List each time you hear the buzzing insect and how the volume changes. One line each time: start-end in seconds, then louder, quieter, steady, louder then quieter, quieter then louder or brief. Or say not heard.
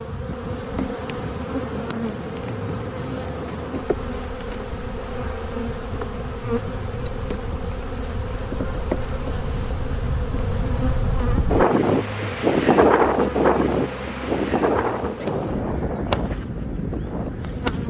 0.0-17.8 steady.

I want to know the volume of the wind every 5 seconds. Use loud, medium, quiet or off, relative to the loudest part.
quiet, quiet, loud, medium.